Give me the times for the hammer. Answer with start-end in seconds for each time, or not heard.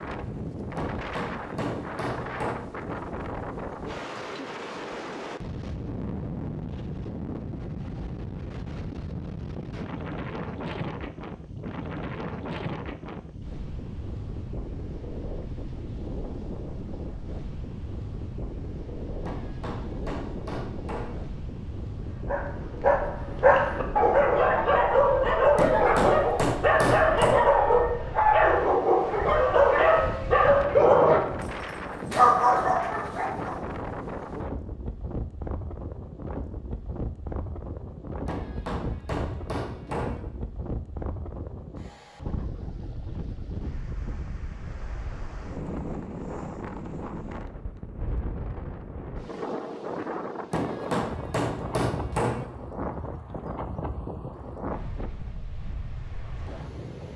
0.8-2.6, 19.2-21.2, 25.6-27.4, 38.2-40.2, 50.5-52.5.